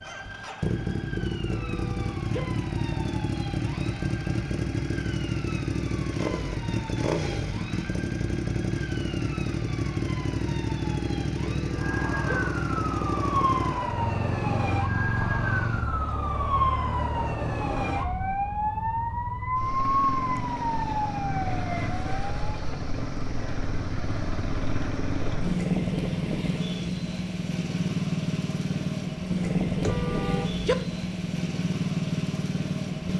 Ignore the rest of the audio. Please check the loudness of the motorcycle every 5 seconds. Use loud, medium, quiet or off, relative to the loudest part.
loud, loud, loud, medium, medium, loud, loud.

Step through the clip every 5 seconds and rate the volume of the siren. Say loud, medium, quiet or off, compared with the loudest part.
quiet, quiet, loud, loud, loud, off, off.